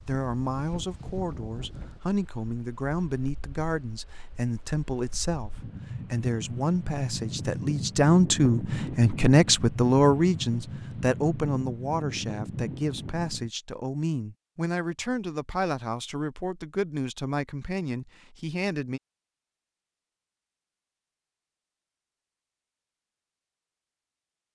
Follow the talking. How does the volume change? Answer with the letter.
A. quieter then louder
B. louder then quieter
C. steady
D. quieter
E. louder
B.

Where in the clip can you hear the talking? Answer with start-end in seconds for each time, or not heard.
0.1-19.0.